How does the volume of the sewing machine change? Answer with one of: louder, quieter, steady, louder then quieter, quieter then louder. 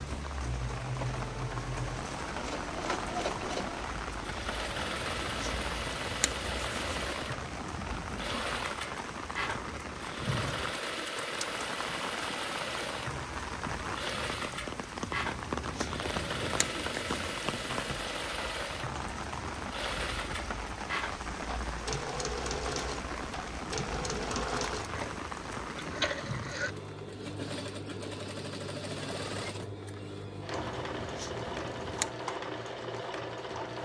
steady.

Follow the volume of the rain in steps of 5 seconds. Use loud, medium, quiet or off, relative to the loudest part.
loud, loud, loud, loud, loud, loud, off.